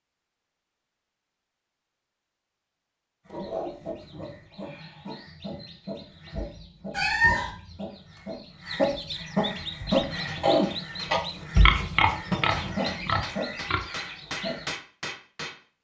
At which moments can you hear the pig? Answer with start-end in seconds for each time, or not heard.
11.1-13.8.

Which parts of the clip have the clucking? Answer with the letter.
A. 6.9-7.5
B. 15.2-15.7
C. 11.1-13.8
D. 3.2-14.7
D.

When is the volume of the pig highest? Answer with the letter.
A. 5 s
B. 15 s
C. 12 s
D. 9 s
C.